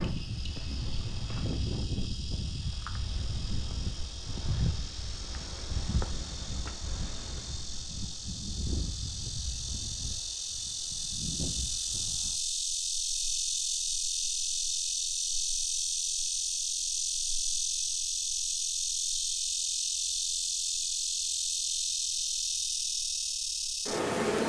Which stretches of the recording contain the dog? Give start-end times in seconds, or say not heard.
not heard.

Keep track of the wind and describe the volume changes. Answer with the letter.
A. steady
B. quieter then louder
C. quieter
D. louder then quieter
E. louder
C.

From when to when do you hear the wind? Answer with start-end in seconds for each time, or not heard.
0.0-12.4.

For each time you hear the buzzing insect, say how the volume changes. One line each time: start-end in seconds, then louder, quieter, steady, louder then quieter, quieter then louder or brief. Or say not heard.
0.0-24.4 louder.